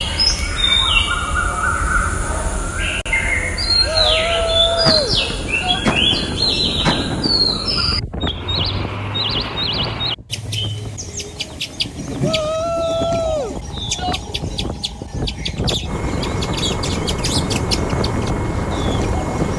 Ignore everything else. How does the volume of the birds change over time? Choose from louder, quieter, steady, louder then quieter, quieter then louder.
quieter.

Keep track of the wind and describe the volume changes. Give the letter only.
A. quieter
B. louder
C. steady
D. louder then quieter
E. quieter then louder
E.